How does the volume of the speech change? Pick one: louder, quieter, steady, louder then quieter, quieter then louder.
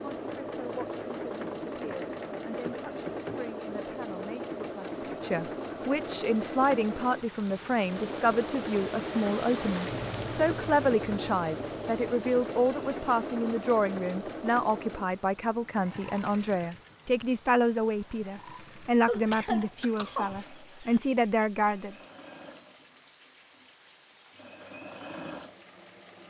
louder.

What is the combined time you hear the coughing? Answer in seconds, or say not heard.
2 s.